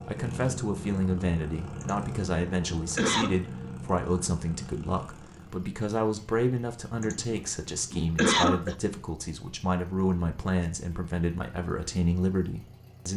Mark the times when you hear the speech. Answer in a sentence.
The speech can be heard from 0.1 to 13.1 s.